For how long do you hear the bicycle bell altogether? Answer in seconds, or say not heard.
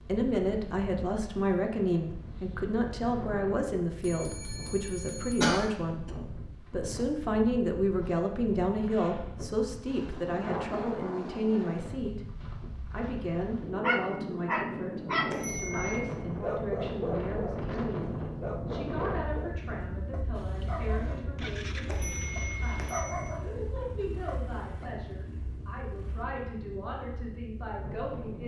4 s.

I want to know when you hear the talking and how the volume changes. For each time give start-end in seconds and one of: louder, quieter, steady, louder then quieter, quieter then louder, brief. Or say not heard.
0.0-28.4 quieter.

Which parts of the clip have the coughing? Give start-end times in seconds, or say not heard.
5.4-6.1.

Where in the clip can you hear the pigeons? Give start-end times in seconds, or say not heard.
not heard.